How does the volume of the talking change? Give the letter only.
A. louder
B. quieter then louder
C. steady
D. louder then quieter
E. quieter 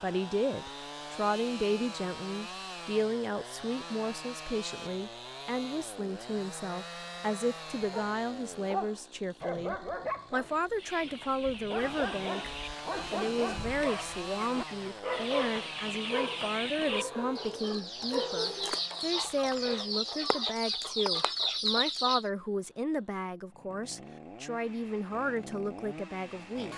C.